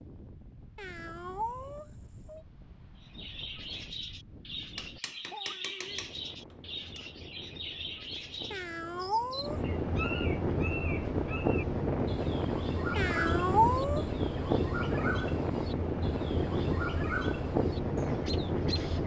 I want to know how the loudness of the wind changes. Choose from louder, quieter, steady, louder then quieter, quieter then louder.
louder.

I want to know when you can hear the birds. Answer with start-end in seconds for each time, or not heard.
3.0-19.0.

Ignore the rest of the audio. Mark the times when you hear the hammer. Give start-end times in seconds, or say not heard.
4.8-7.0.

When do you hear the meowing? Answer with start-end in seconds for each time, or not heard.
0.8-2.4, 8.5-9.6, 12.9-14.1.